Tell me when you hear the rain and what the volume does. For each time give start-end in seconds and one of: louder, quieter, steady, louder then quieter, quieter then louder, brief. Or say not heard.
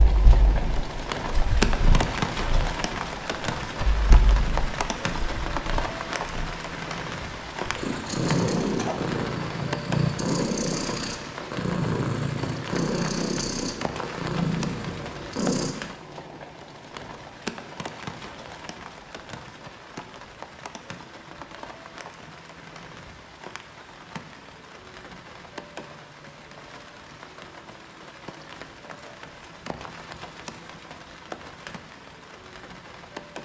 0.0-33.4 quieter.